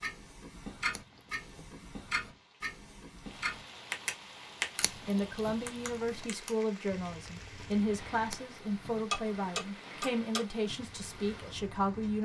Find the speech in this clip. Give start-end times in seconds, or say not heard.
5.0-12.2.